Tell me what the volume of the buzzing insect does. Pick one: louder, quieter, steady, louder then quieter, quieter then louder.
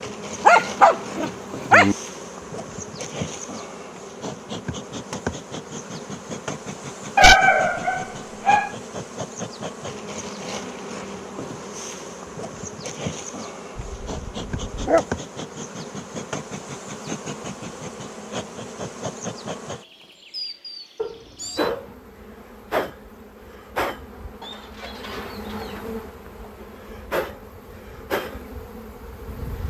steady.